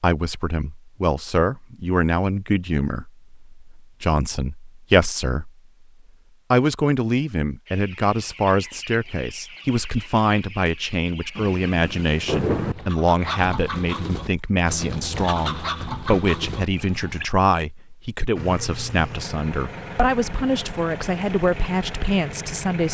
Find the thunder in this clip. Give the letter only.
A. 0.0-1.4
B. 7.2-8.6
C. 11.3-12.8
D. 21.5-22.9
C.